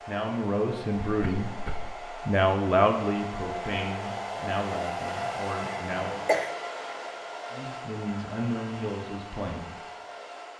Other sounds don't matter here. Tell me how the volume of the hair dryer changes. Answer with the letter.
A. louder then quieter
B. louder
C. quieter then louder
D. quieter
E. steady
A.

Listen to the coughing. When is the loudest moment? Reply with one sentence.
The volume of the coughing peaks at 6 seconds.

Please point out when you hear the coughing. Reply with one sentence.
You can hear the coughing from 1.1 to 1.9 s and from 5.9 to 6.5 s.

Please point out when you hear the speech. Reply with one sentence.
The speech can be heard from 0.1 to 1.6 s, from 2.2 to 6.2 s and from 7.5 to 9.8 s.